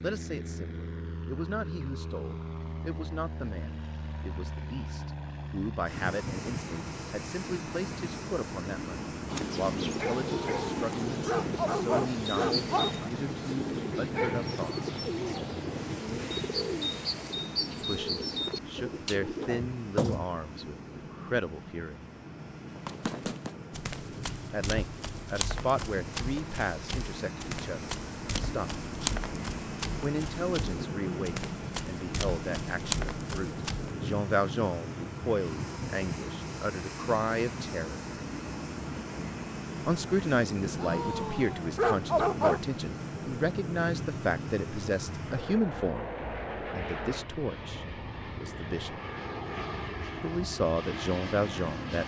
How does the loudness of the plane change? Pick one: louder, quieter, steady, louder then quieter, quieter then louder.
steady.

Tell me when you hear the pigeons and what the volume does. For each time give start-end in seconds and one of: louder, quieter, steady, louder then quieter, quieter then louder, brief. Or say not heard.
9.2-20.2 steady.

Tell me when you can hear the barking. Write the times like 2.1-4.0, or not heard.
10.2-13.1, 40.8-42.6.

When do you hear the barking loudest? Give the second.
42 s.